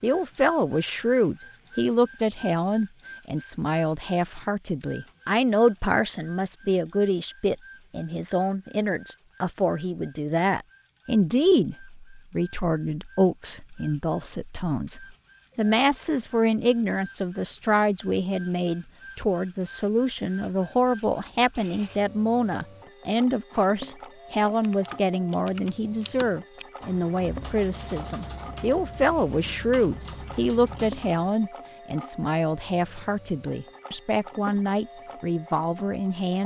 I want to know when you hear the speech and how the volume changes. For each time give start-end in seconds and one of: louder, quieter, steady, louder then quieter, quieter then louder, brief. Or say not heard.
0.0-36.4 steady.